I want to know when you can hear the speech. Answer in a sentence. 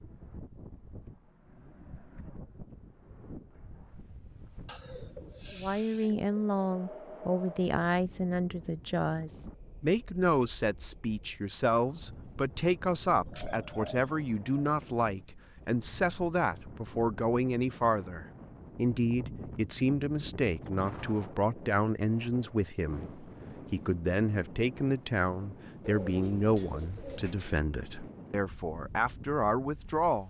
You can hear the speech from 5.5 to 30.2 s.